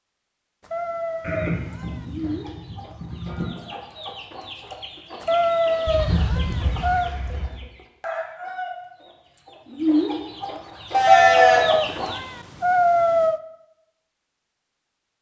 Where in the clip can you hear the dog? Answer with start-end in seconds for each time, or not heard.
not heard.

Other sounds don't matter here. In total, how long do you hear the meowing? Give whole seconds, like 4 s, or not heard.
6 s.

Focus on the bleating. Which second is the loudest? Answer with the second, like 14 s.
11 s.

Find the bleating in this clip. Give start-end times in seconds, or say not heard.
1.2-3.5, 5.8-7.6, 10.9-11.8.